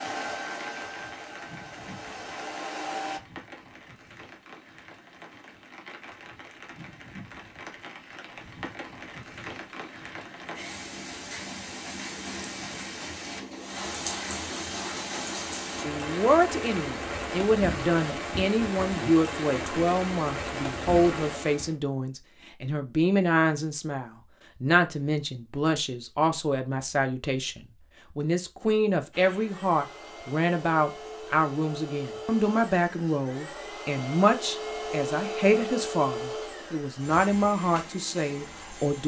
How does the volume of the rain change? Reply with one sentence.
The volume of the rain goes up.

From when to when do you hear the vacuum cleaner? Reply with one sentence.
You can hear the vacuum cleaner from 0.0 to 3.2 s and from 29.1 to 39.0 s.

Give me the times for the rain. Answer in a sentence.
The rain can be heard from 0.0 to 21.8 s.